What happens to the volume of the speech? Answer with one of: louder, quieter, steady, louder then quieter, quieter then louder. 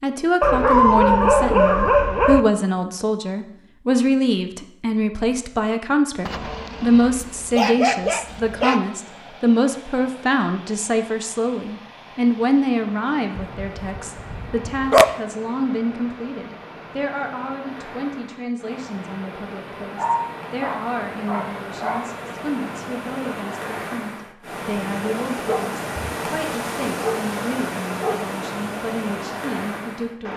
quieter.